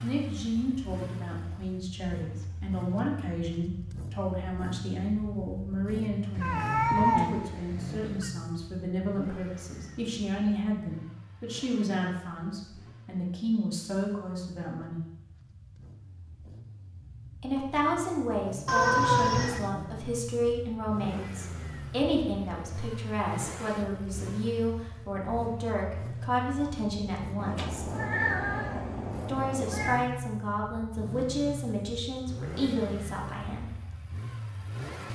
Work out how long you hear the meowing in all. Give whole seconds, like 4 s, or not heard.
6 s.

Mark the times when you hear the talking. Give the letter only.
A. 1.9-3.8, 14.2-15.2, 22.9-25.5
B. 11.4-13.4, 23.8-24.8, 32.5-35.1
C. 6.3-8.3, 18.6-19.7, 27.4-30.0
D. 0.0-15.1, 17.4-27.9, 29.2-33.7
D.